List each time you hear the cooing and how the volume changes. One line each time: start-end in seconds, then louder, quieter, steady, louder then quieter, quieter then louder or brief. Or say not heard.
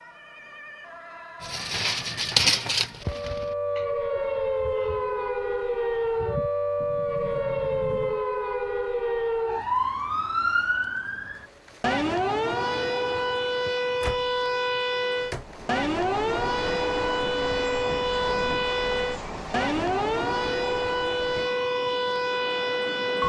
1.4-6.5 quieter then louder.